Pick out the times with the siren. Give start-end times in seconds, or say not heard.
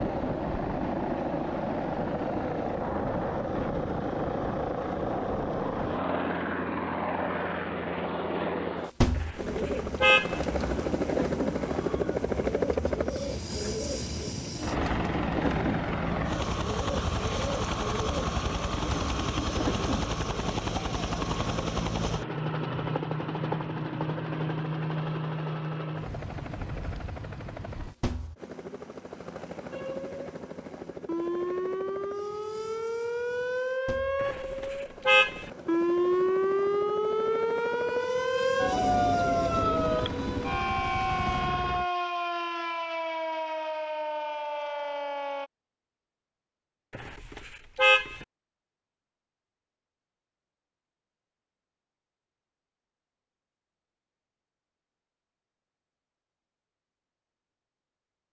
29.7-45.5.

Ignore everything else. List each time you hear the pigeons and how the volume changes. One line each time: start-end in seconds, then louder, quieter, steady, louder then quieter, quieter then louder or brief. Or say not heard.
9.3-20.3 steady.